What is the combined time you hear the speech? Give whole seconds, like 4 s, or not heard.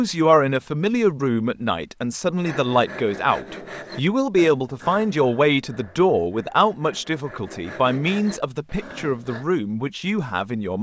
11 s.